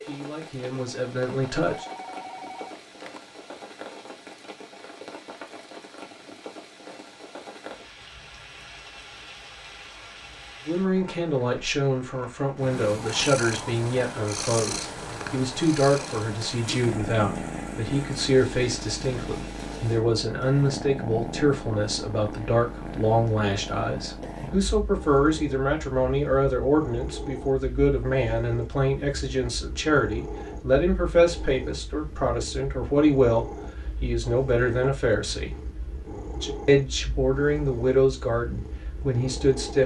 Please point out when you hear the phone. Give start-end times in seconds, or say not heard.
1.6-3.2.